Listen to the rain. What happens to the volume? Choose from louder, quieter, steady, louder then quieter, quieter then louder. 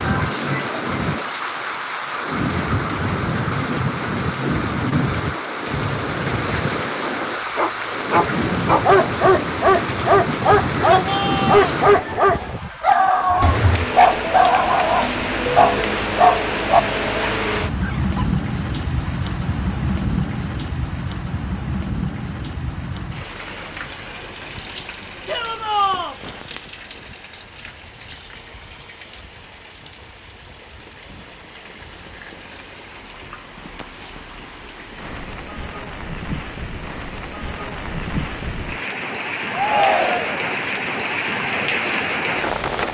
quieter then louder.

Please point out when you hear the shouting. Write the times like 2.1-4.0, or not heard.
10.4-11.8, 25.2-26.1, 39.5-40.5.